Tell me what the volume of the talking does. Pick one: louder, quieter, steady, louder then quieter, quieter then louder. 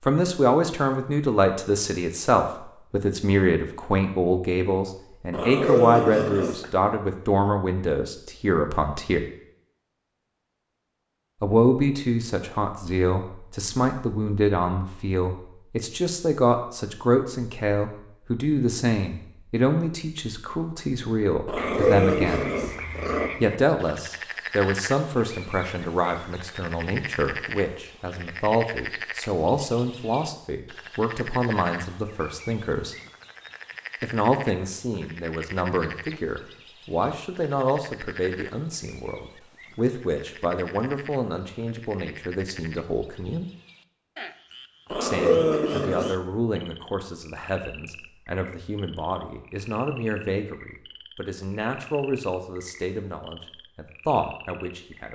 quieter.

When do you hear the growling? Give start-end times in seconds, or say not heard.
5.3-6.7, 21.4-23.3, 44.9-46.1.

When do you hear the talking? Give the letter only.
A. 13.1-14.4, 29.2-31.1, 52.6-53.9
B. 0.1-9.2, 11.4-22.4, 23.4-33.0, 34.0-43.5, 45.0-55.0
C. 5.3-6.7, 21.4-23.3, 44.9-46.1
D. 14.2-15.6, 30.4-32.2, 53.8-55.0
B.